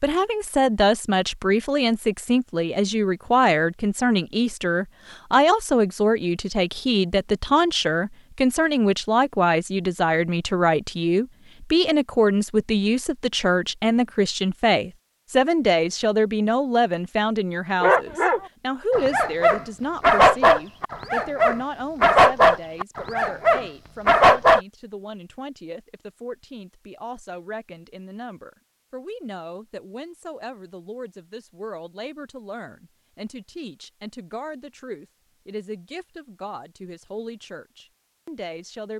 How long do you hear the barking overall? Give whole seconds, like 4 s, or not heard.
7 s.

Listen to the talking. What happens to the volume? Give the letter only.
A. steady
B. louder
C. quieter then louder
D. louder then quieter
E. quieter
E.